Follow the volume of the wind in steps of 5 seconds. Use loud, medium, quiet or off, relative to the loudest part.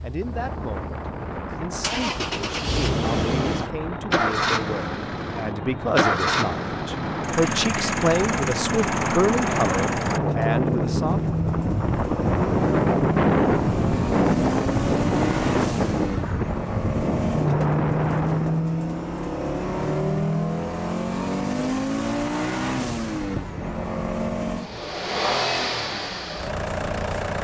medium, medium, loud, loud, off, off.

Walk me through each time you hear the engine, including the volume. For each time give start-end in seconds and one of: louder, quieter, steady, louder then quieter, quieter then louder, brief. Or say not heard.
0.0-27.3 steady.